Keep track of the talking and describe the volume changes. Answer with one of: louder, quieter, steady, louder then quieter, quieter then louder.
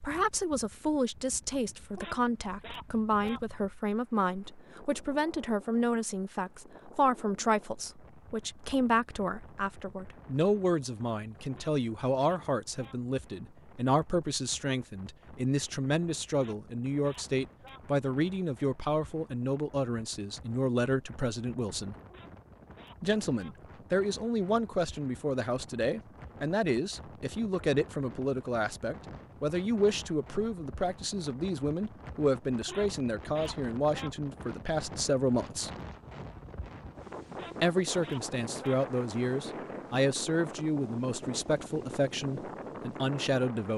steady.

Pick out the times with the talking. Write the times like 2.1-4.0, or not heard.
0.0-21.9, 23.0-35.7, 37.6-43.7.